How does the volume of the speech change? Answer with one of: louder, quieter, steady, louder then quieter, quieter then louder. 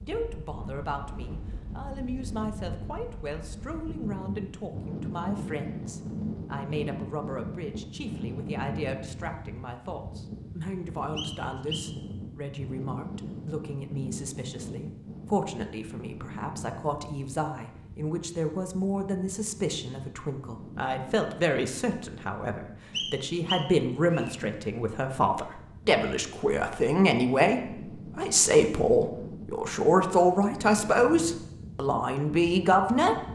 louder.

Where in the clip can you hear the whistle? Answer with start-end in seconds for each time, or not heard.
11.2-11.9, 22.9-24.4.